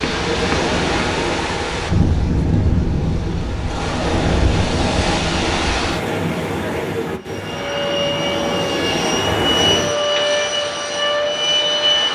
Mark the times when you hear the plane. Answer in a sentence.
You can hear the plane from 7.2 to 12.1 s.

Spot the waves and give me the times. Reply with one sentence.
The waves can be heard from 0.0 to 10.0 s.